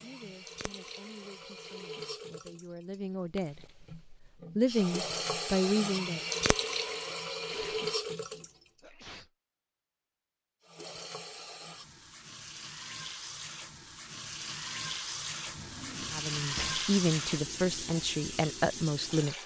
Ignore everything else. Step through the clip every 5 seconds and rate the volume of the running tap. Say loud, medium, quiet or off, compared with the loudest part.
medium, loud, medium, loud.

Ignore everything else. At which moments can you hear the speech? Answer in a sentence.
The speech can be heard from 0.0 to 6.2 s and from 16.1 to 19.4 s.